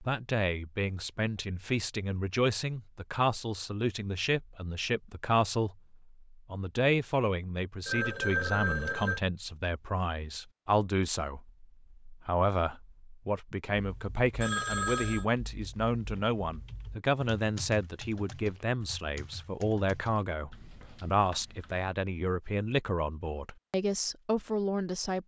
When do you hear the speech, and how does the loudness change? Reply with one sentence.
The speech can be heard from 0.0 to 25.2 s, at a steady volume.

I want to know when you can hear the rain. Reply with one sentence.
You can't hear the rain here.